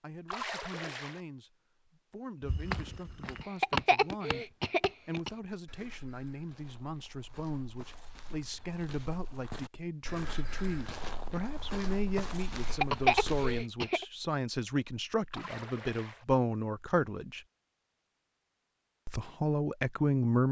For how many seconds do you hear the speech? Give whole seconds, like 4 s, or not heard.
19 s.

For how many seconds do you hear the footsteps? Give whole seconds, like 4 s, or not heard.
11 s.